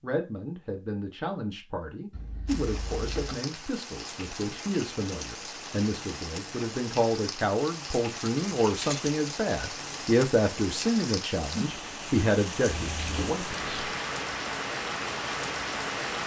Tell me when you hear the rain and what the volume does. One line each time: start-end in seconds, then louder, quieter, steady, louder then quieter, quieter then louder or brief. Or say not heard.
2.5-16.2 louder.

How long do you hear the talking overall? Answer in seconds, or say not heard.
14 s.